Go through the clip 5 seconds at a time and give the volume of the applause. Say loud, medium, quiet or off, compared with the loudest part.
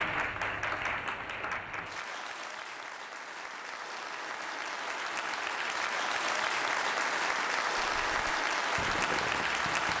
medium, loud.